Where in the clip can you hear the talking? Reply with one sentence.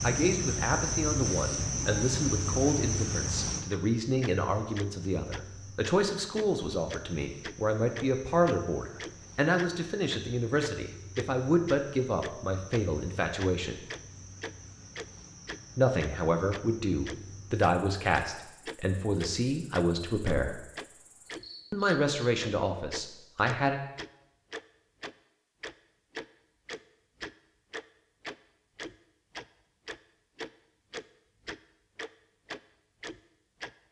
The talking can be heard from 0.0 to 13.8 s, from 15.8 to 20.6 s and from 21.7 to 23.8 s.